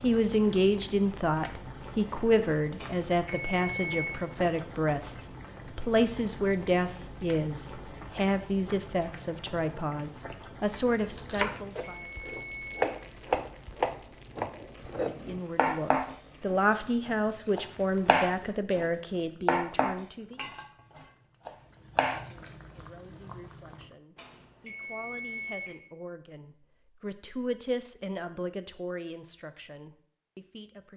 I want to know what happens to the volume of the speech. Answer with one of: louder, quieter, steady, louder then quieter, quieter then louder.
quieter.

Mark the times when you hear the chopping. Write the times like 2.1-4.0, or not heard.
11.1-22.2.